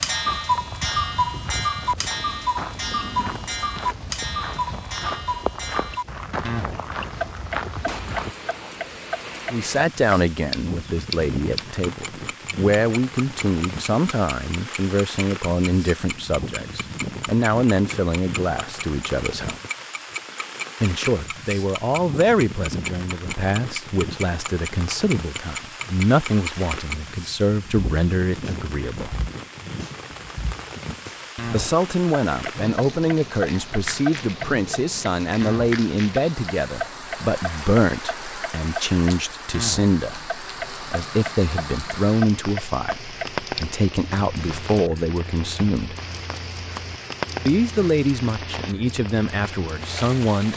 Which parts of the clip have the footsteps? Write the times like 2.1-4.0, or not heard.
0.1-8.3.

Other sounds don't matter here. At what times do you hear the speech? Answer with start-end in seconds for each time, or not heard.
9.5-19.6, 20.8-29.1, 31.4-46.0, 47.5-50.5.